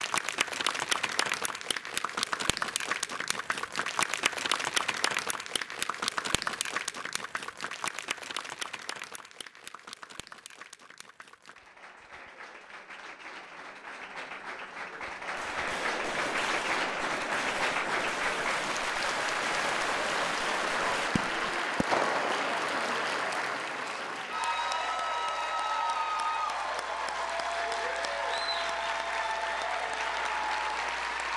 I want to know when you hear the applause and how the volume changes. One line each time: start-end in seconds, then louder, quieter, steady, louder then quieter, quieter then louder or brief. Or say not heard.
0.0-31.3 quieter then louder.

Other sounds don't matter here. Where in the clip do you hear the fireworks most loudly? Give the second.
22 s.